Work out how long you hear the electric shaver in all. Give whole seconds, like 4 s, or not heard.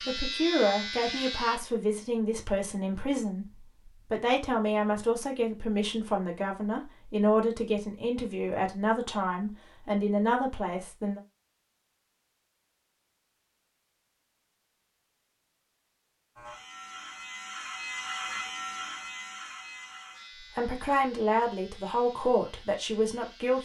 9 s.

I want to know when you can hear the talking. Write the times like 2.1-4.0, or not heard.
0.1-11.2, 20.4-23.6.